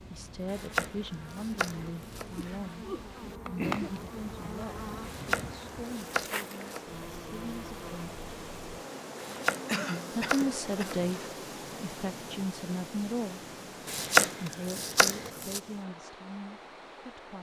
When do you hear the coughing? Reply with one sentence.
You can hear the coughing from 2.4 to 3.9 s and from 9.7 to 11.1 s.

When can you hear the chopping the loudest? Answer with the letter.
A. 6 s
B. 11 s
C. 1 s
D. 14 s
D.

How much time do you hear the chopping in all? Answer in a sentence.
The chopping can be heard for 8 seconds in total.